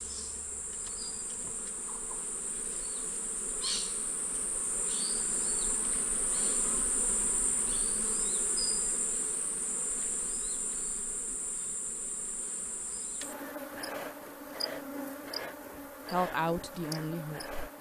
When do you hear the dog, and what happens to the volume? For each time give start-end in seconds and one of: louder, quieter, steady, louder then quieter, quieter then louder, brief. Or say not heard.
not heard.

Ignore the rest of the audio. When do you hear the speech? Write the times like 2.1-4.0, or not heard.
16.1-17.7.